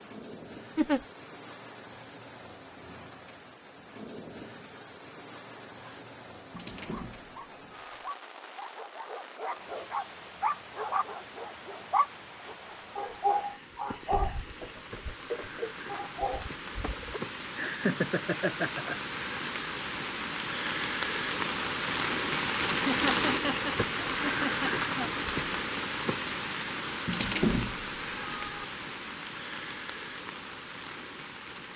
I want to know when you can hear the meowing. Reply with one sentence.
You can hear the meowing from 6.5 to 8.2 s, from 14.6 to 15.8 s and from 27.1 to 28.6 s.